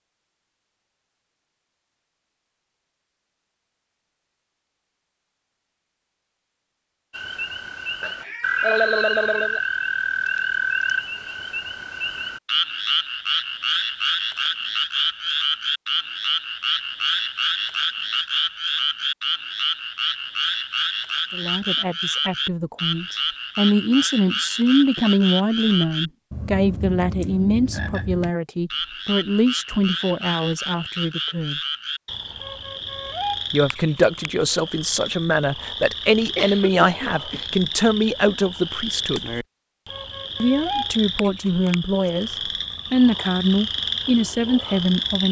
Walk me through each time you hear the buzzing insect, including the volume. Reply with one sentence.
The buzzing insect can't be heard in this clip.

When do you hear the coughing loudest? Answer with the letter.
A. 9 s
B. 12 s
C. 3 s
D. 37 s
A.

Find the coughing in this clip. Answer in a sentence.
The coughing can be heard from 8.0 to 9.6 s and from 36.4 to 37.5 s.